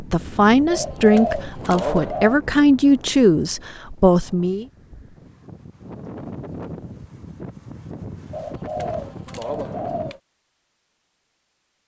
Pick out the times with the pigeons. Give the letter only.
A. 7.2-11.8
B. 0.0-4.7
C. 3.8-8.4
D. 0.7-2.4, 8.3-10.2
D.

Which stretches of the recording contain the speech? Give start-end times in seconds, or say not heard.
0.0-4.7.